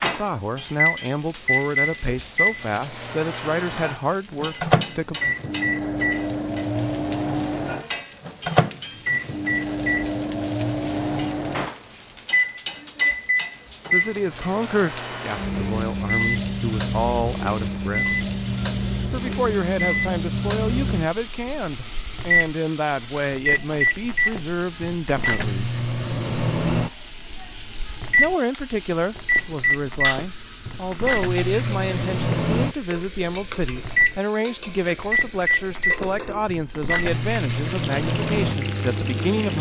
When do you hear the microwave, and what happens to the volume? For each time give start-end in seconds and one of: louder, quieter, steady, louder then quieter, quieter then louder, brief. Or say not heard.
0.0-39.5 steady.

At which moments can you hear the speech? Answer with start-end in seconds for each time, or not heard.
0.0-5.2, 13.9-18.1, 19.1-25.8, 28.1-39.5.